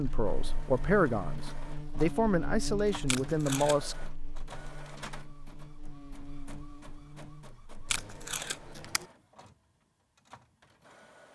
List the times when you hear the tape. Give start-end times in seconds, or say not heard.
3.0-3.9, 7.8-9.1.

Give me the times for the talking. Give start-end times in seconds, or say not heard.
0.0-4.0.